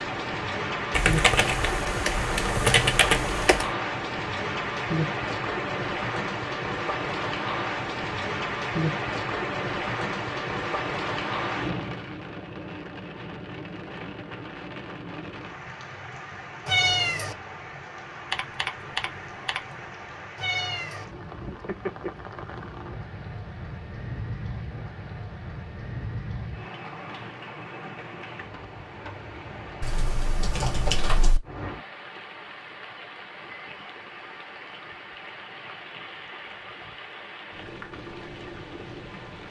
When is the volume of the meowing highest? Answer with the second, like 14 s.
17 s.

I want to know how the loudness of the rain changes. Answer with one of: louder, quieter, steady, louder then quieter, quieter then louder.
quieter.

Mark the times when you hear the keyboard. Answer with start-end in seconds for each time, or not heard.
0.9-3.6, 18.3-19.6, 29.8-31.4.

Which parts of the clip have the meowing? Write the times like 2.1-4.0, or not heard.
16.6-17.4, 20.4-21.1.